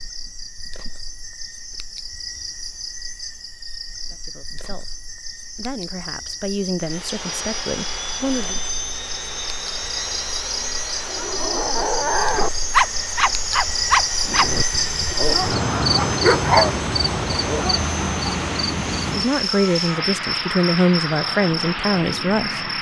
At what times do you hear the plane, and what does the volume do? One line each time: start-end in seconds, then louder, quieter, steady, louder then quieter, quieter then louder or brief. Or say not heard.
6.8-22.7 steady.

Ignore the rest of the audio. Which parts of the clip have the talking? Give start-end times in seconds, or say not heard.
4.1-8.6, 19.0-22.7.